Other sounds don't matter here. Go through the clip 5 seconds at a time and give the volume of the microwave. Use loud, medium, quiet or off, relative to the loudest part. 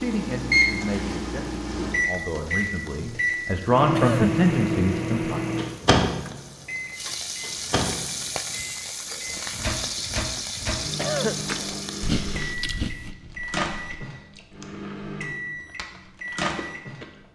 loud, loud, medium, medium.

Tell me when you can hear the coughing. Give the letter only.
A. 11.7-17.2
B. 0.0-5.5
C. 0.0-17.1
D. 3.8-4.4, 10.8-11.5
D.